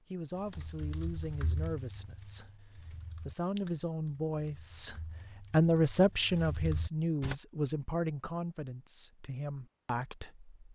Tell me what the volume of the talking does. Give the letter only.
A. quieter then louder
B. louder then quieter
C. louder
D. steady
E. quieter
B.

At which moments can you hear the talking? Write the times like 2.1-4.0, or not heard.
0.1-10.6.